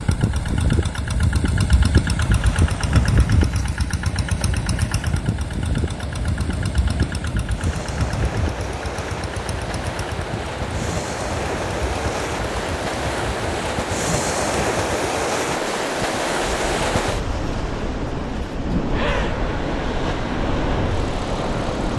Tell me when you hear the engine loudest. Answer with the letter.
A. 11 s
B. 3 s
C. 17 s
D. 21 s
B.